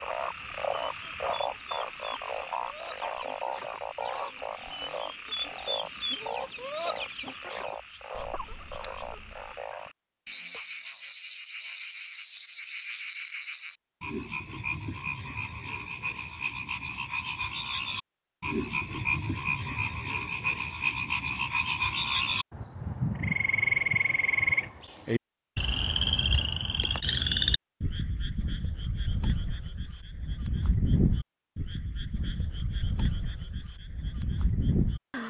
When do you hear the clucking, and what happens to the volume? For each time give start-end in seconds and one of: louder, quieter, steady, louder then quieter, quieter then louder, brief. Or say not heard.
0.2-9.6 louder then quieter.